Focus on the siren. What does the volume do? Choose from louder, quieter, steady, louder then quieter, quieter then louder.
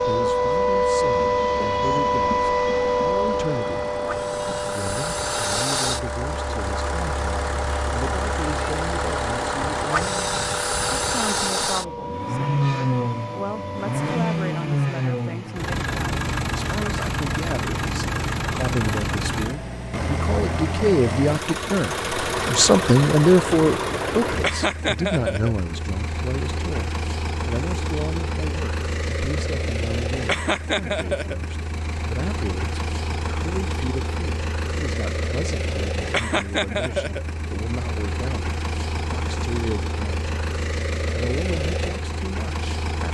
quieter.